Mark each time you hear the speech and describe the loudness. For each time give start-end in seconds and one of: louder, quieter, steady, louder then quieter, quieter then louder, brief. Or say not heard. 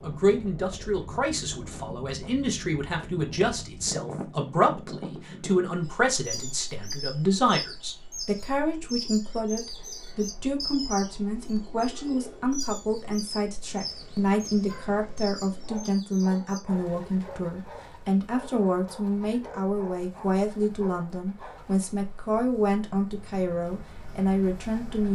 0.0-25.1 steady.